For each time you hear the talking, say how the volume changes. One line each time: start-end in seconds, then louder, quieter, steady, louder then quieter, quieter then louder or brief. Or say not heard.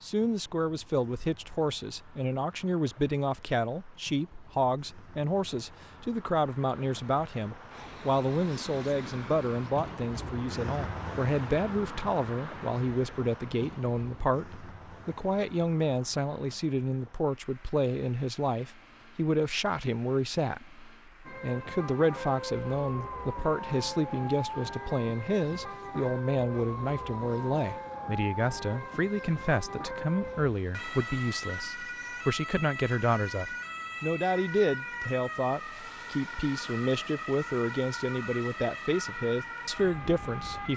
0.0-40.7 steady.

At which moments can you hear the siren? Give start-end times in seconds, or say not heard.
21.2-40.7.